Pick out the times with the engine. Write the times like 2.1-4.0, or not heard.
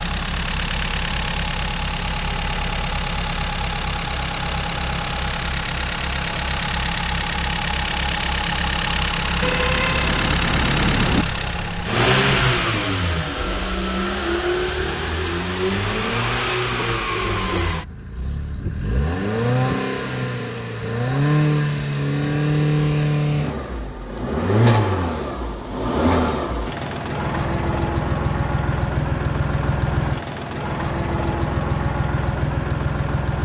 0.0-33.4.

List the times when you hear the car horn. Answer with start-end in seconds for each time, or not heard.
9.4-11.2.